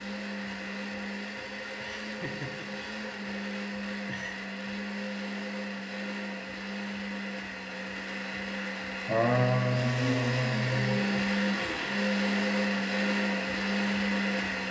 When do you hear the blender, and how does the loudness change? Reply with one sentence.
The blender can be heard from 0.0 to 14.6 s, getting louder.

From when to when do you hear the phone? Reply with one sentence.
The phone can't be heard in this clip.